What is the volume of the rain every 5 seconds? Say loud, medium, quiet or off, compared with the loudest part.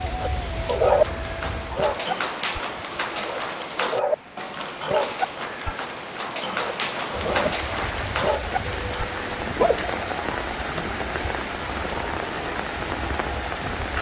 medium, loud, loud.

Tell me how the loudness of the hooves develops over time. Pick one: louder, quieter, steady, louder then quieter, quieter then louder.
steady.